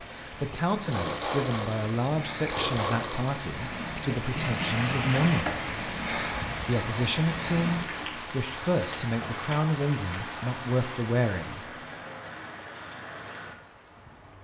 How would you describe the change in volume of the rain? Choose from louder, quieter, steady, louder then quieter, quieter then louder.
louder then quieter.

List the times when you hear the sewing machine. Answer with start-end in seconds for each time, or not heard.
0.0-5.8.